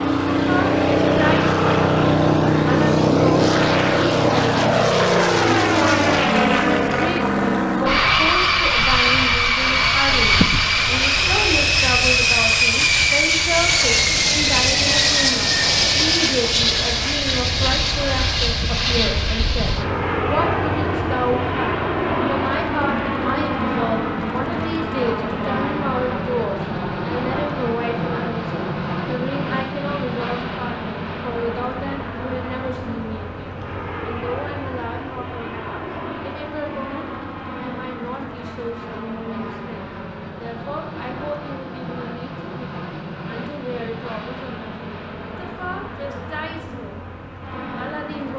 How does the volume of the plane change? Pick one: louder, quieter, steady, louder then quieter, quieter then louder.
quieter.